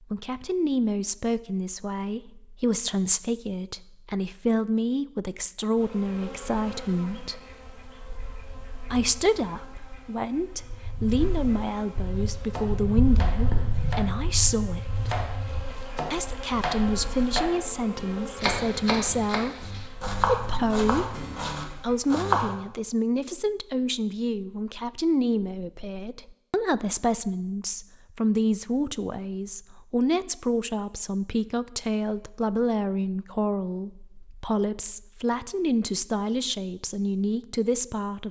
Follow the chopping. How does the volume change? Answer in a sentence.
The loudness of the chopping goes up.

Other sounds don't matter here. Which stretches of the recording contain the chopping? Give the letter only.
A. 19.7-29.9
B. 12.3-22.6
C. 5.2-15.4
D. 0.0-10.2
B.